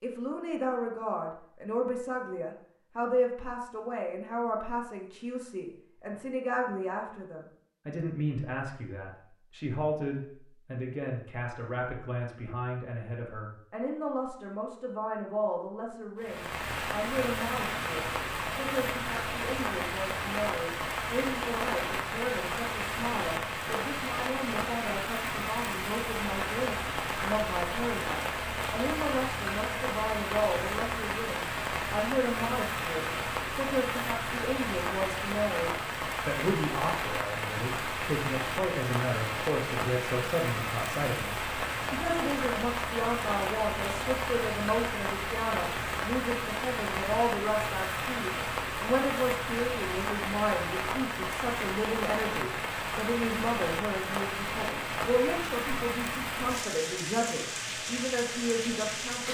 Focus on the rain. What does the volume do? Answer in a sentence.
The volume of the rain stays about the same.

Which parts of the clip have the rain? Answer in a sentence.
You can hear the rain from 16.2 to 59.2 s.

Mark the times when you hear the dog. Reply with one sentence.
You can't hear the dog here.